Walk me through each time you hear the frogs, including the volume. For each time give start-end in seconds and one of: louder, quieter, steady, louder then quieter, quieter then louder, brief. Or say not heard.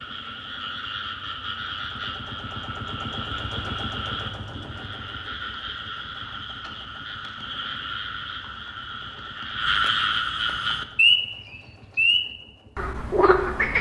0.0-13.7 louder.